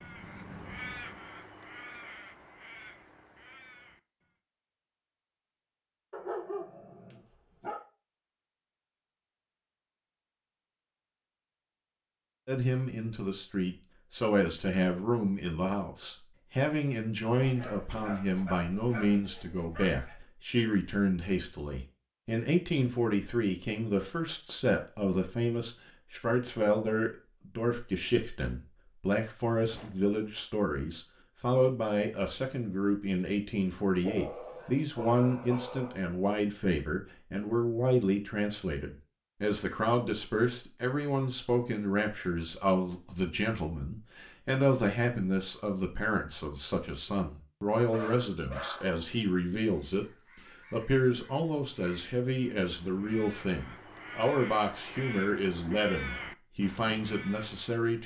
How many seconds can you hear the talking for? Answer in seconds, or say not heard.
45 s.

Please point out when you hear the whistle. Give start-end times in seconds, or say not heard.
not heard.